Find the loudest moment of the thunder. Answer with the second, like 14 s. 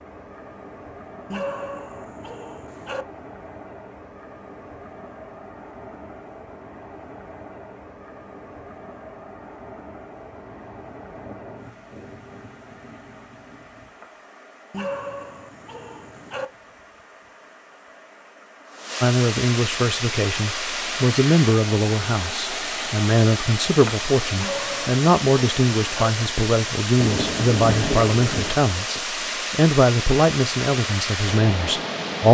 28 s.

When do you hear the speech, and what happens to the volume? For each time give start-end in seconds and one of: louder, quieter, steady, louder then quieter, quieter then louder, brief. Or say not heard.
19.0-32.2 steady.